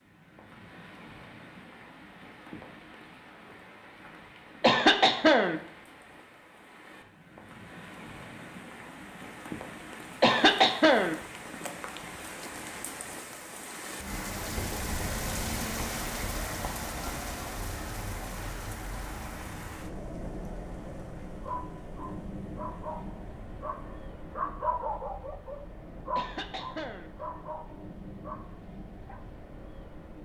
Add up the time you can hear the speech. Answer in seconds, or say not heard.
not heard.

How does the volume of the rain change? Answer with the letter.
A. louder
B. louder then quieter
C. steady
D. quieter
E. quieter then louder
B.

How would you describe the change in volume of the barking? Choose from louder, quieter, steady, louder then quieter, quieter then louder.
louder then quieter.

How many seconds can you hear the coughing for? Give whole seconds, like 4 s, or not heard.
3 s.